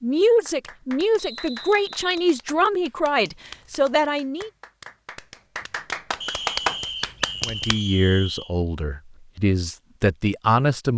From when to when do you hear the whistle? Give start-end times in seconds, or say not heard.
1.1-2.0, 6.2-8.5.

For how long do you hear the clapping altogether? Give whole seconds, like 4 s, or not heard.
7 s.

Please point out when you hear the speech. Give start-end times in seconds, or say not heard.
0.0-4.5, 7.5-10.9.